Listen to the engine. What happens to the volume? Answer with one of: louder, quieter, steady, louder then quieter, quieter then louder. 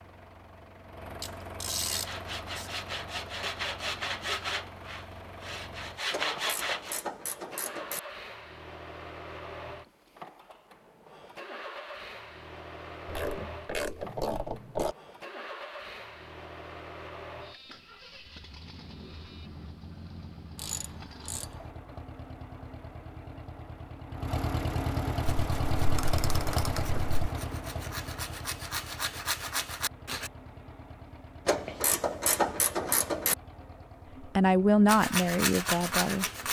louder then quieter.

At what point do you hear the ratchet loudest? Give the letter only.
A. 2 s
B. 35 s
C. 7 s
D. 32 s
D.